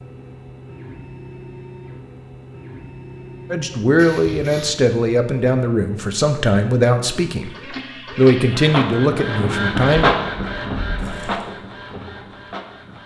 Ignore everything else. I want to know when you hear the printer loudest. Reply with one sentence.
The volume of the printer peaks at 10 seconds.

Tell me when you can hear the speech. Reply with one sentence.
You can hear the speech from 3.5 to 10.1 s.